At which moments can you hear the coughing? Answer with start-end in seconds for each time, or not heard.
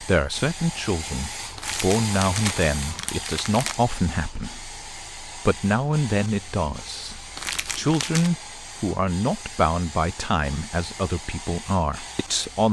not heard.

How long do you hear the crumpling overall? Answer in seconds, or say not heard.
3 s.